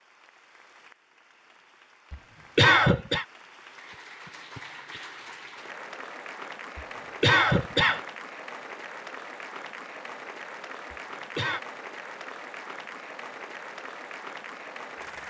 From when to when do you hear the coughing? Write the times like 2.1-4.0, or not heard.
2.1-3.2, 6.8-8.0, 10.9-11.6.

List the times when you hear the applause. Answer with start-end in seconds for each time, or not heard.
0.0-15.2.